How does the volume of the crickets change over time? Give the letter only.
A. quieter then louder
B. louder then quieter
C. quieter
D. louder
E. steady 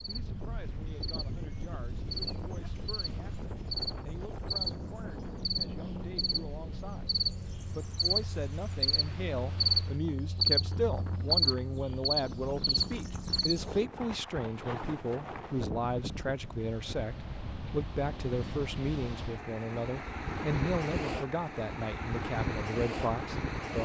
D.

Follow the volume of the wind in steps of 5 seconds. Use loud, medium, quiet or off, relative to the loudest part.
medium, medium, medium, medium, loud.